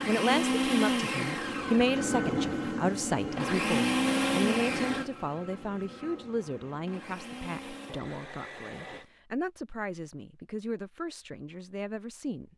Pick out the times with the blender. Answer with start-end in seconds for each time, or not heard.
0.0-9.1.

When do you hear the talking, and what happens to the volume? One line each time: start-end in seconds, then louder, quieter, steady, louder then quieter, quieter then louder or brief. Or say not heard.
0.1-12.5 quieter.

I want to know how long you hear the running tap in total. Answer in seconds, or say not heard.
not heard.